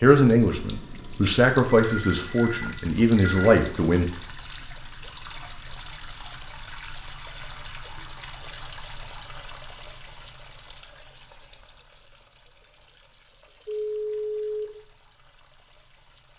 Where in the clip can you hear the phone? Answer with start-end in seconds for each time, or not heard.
1.7-3.5, 13.7-14.7.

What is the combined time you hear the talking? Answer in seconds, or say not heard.
4 s.